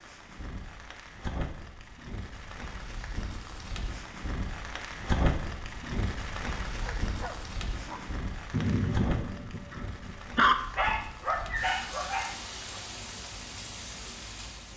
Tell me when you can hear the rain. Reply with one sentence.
The rain can be heard from 0.0 to 14.7 s.